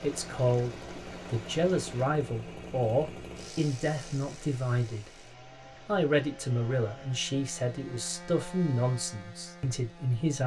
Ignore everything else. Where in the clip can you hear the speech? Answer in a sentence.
You can hear the speech from 0.0 to 5.1 s and from 5.8 to 10.4 s.